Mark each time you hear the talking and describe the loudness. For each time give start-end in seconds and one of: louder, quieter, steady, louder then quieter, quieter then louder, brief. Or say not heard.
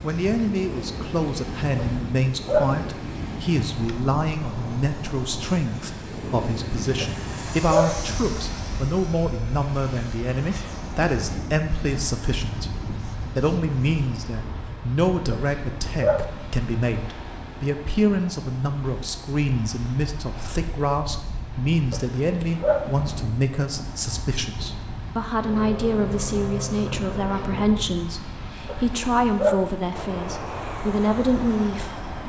0.0-32.0 steady.